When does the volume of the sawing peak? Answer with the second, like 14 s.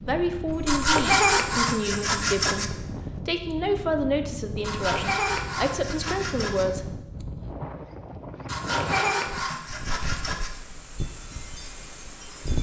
1 s.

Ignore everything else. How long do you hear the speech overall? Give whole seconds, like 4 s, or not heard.
7 s.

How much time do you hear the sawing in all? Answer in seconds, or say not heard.
6 s.